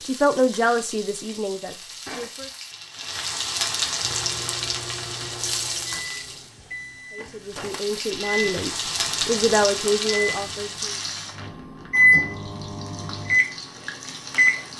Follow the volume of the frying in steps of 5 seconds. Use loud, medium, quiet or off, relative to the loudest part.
loud, loud, medium.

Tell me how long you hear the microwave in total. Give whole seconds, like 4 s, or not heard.
11 s.